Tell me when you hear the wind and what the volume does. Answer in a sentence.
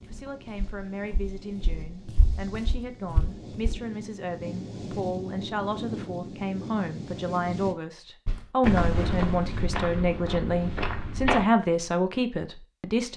The wind can be heard from 0.0 to 7.8 s, getting louder.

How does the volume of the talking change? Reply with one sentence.
The loudness of the talking goes up.